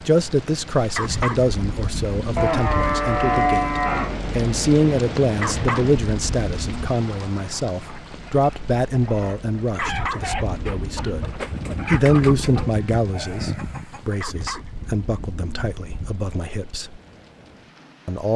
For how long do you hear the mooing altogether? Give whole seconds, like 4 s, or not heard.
4 s.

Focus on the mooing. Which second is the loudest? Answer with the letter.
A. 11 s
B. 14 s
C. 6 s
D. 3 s
D.